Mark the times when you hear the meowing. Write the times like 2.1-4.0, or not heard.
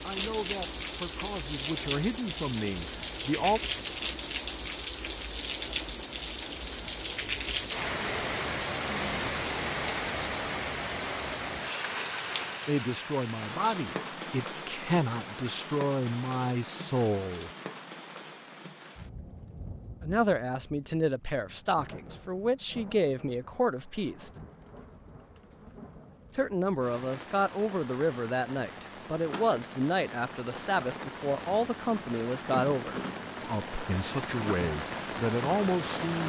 not heard.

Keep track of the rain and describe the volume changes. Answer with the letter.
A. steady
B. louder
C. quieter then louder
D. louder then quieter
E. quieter
C.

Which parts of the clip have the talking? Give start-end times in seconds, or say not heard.
0.0-3.6, 12.7-17.5, 20.0-24.3, 26.4-36.2.